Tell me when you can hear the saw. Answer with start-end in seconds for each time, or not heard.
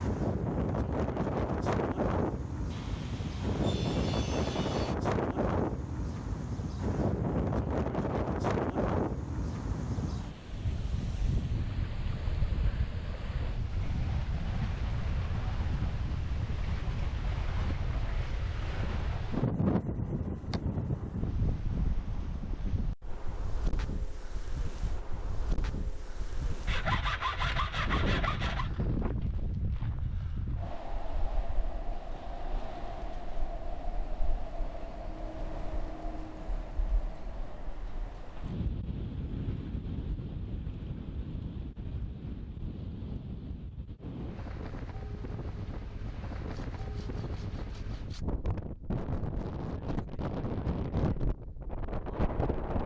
2.7-5.0, 26.6-28.7, 46.4-48.2.